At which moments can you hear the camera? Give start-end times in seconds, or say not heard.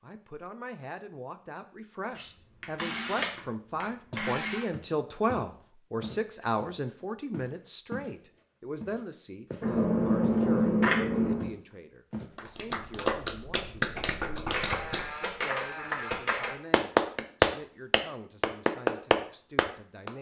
2.1-4.7, 9.6-11.5, 14.5-16.6.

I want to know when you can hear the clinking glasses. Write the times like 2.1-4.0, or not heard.
not heard.